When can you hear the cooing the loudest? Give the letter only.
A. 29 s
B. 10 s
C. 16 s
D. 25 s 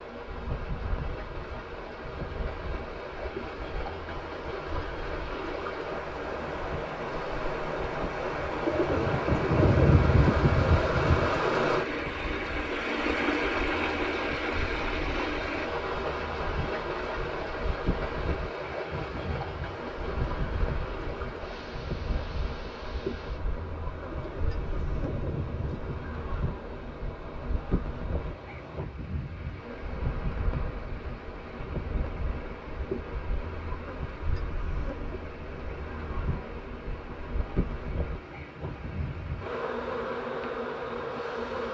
B.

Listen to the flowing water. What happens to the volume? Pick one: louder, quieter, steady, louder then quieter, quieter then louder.
louder then quieter.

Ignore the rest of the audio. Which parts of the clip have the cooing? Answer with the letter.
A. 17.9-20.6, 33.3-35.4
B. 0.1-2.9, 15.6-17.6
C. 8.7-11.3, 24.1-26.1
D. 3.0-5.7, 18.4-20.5
C.